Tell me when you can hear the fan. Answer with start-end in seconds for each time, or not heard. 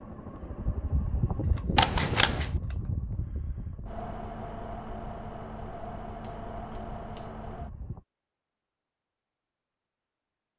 0.0-8.1.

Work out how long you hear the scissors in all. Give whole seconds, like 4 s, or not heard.
2 s.